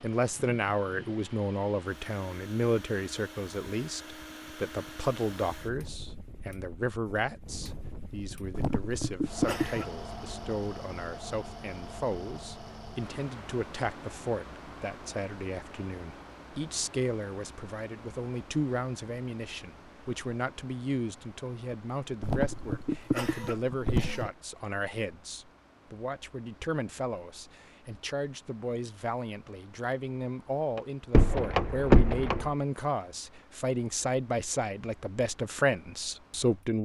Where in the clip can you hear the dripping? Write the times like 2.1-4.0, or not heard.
not heard.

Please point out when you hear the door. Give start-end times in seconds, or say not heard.
30.8-32.5.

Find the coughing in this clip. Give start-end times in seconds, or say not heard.
8.5-9.9, 22.2-24.3.